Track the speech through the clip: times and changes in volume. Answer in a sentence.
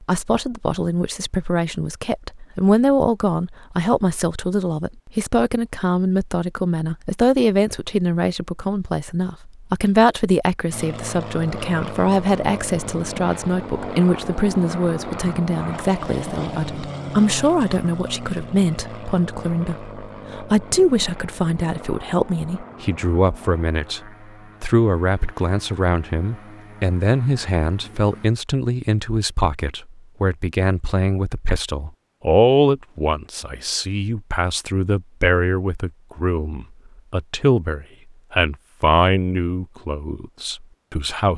You can hear the speech from 0.0 to 41.3 s, at a steady volume.